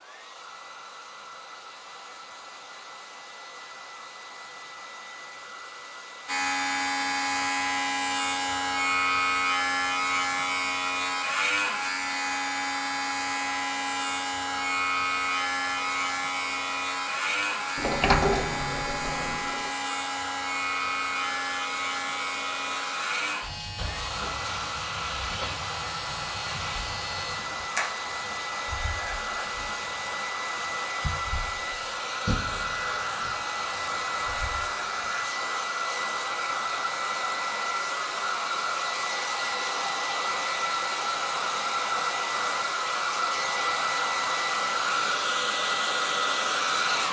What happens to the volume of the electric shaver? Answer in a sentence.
The loudness of the electric shaver goes down.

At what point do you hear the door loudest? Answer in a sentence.
The volume of the door peaks at 18 seconds.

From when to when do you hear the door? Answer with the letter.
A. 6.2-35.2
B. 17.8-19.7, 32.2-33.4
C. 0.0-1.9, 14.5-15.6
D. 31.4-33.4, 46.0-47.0
B.